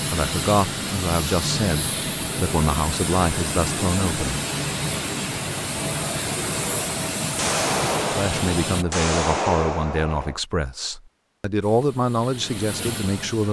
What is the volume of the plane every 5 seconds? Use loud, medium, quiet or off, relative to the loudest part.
loud, loud, medium.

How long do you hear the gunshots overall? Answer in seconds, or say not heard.
3 s.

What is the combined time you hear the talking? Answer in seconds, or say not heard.
10 s.